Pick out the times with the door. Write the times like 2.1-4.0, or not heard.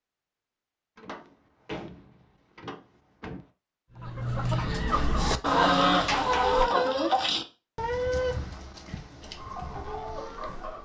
0.9-3.5, 5.5-6.7.